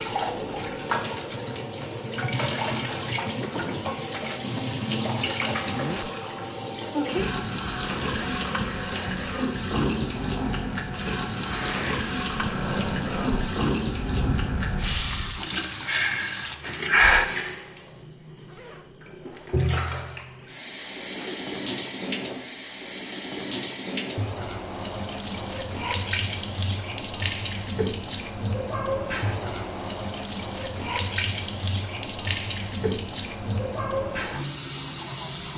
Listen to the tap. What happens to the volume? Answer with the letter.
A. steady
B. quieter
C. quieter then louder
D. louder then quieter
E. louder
A.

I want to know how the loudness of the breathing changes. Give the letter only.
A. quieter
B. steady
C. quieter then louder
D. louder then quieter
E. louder
E.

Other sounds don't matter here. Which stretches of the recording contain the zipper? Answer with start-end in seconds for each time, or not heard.
5.7-6.1, 18.4-19.5.